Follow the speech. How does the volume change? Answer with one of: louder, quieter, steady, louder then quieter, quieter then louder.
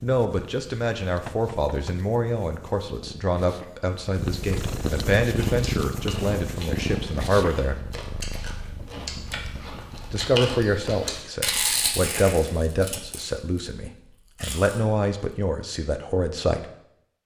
steady.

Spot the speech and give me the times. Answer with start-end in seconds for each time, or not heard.
0.0-7.8, 10.1-16.6.